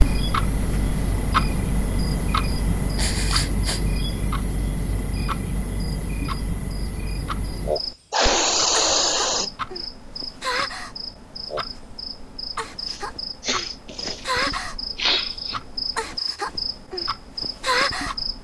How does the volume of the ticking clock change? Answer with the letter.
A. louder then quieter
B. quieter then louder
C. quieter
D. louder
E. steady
C.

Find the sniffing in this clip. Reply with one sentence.
You can hear the sniffing from 3.0 to 3.8 s, from 8.1 to 9.5 s and from 12.8 to 15.6 s.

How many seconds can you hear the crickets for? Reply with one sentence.
You can hear the crickets for 18 seconds altogether.